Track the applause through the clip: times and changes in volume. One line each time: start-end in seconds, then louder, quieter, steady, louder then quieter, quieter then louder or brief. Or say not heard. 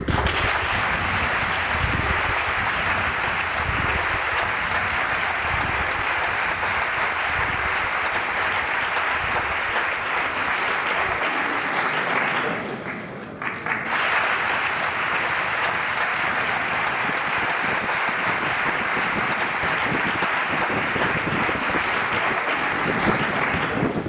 0.0-24.0 steady.